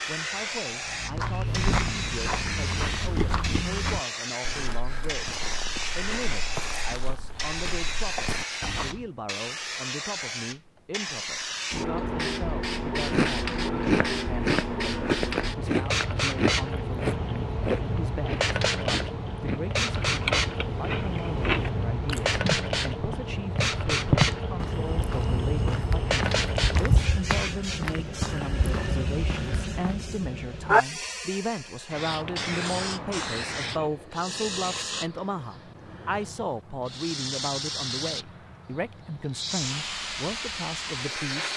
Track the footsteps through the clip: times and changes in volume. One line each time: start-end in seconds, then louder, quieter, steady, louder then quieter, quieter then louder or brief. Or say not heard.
0.8-9.1 quieter
22.4-30.1 quieter.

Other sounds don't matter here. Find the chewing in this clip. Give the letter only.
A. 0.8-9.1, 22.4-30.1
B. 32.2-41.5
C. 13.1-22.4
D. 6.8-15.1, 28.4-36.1
C.